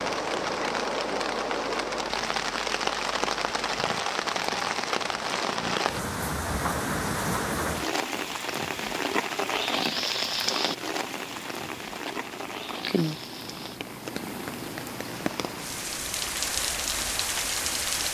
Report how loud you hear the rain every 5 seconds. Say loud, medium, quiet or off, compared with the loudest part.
loud, loud, medium, loud.